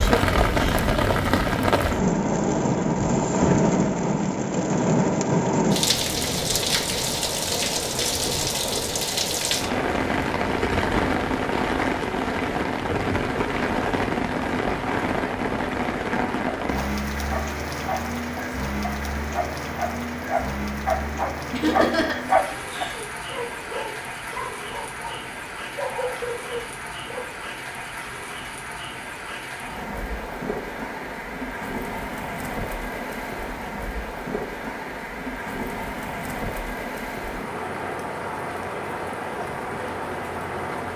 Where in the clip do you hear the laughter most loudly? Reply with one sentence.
The volume of the laughter peaks at 22 seconds.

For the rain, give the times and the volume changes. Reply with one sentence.
The rain can be heard from 0.0 to 40.9 s, getting quieter.